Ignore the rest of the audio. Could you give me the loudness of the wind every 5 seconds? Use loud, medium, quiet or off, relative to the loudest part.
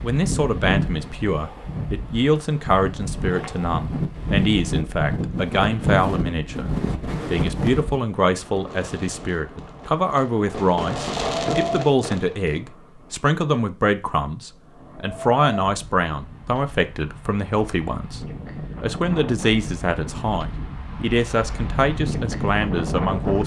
loud, loud, loud, medium, loud.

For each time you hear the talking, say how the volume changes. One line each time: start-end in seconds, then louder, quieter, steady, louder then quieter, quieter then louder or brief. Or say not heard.
0.0-23.4 steady.